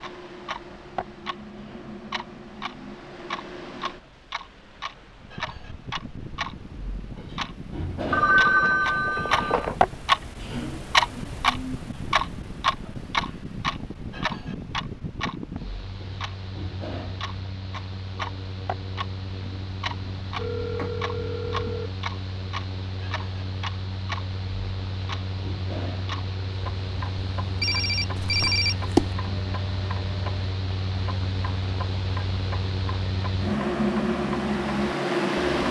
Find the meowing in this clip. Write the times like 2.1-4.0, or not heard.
not heard.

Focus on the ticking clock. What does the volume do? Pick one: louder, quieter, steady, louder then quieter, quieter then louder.
louder then quieter.